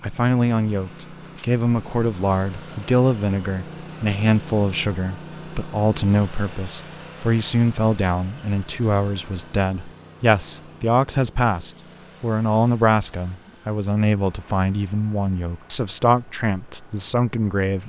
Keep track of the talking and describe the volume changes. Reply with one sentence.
The loudness of the talking stays about the same.